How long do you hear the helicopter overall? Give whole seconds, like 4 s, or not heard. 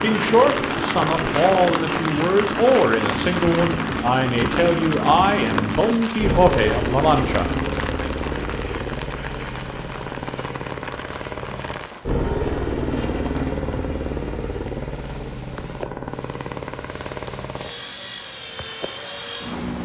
20 s.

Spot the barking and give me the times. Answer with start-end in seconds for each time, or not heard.
not heard.